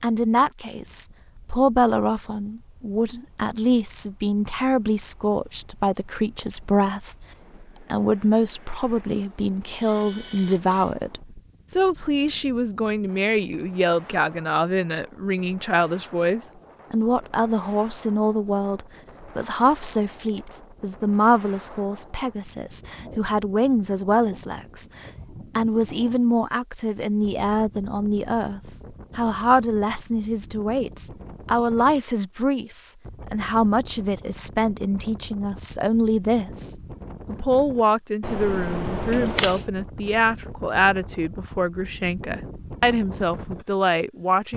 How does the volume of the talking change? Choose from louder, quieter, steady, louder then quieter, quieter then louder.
steady.